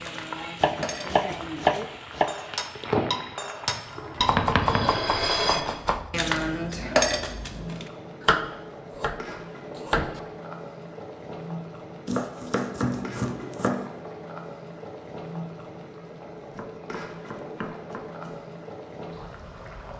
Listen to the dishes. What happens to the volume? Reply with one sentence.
The volume of the dishes goes up.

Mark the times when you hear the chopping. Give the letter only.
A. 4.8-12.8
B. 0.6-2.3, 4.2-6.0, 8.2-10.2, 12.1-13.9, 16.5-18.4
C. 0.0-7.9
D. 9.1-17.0
B.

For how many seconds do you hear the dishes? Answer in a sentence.
You can hear the dishes for 8 seconds altogether.